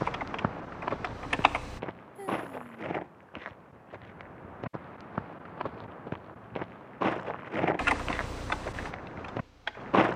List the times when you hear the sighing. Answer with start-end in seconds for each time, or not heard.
2.1-2.9.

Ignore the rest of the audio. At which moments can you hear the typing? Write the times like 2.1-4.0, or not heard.
0.0-1.8, 7.8-10.1.